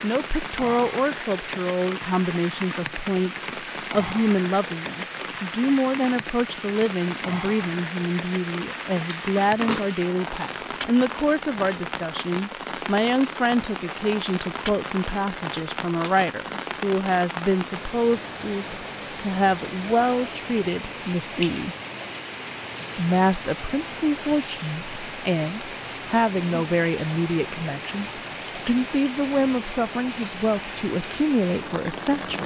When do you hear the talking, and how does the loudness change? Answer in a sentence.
The talking can be heard from 0.0 to 21.8 s, at a steady volume; and from 22.9 to 32.4 s, at a steady volume.